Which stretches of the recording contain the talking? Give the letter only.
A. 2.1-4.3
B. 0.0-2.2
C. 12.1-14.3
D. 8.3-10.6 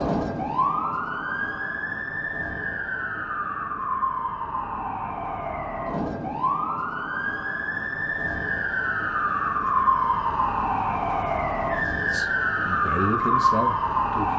C.